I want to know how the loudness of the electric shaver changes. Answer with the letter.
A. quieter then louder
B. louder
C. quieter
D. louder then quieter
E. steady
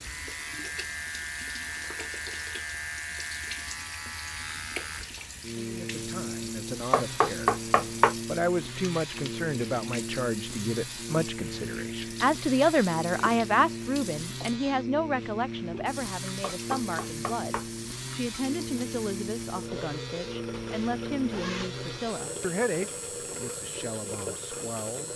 E.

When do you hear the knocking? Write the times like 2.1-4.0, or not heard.
6.9-8.2, 16.4-17.7.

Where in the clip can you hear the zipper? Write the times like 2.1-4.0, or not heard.
20.5-21.7.